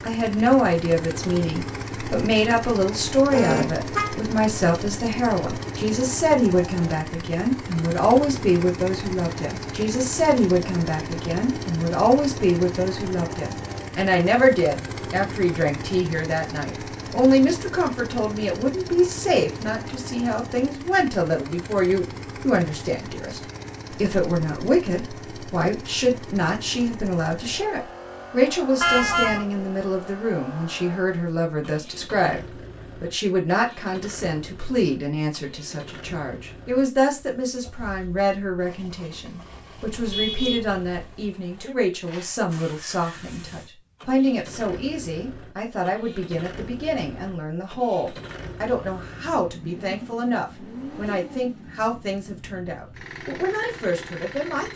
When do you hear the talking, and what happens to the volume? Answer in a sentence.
The talking can be heard from 0.0 to 32.4 s, at a steady volume; and from 33.0 to 54.7 s, at a steady volume.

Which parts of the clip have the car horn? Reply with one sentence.
The car horn can be heard from 3.3 to 4.2 s, from 28.8 to 29.4 s and from 39.8 to 40.9 s.